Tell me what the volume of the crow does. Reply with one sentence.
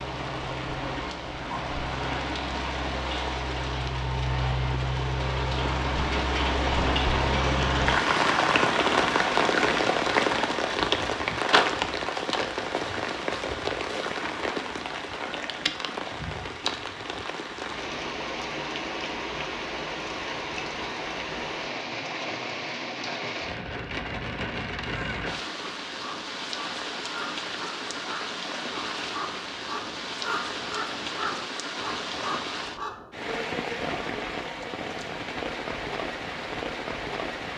The volume of the crow goes up.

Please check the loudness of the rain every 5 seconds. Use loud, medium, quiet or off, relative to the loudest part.
medium, loud, loud, medium, medium, medium, medium, medium.